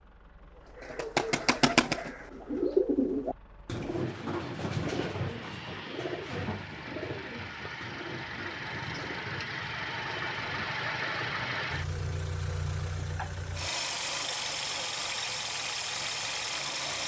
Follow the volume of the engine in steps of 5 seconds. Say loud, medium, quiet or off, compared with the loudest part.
quiet, medium, loud, loud.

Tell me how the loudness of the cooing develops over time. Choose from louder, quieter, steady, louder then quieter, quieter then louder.
quieter.